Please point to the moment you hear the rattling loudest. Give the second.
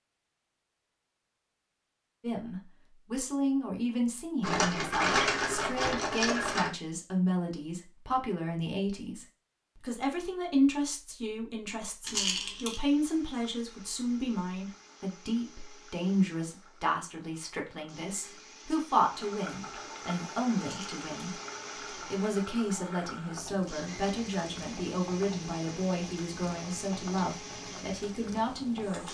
5 s.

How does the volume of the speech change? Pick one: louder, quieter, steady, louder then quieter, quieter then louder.
steady.